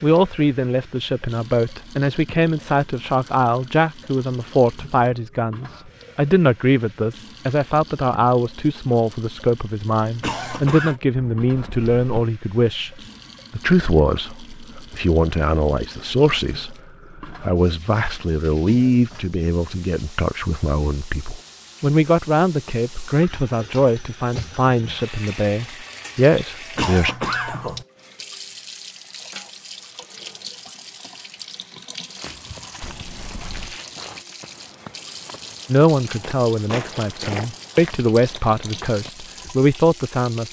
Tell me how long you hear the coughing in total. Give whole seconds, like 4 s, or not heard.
2 s.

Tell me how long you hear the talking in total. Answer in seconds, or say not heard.
31 s.